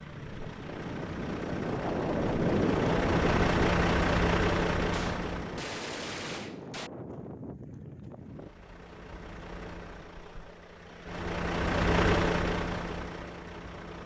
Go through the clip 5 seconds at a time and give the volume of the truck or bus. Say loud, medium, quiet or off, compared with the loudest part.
loud, medium, loud.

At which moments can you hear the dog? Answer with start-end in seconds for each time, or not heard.
not heard.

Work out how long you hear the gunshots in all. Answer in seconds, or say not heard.
2 s.